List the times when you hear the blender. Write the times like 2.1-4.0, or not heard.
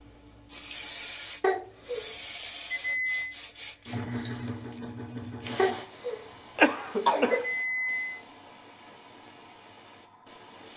not heard.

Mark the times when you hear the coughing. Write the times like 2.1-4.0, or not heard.
1.4-2.1, 5.5-7.5.